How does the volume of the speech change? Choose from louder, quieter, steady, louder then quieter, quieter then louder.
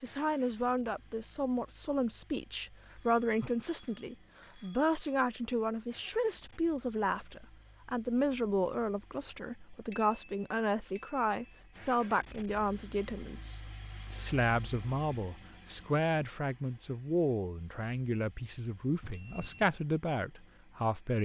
steady.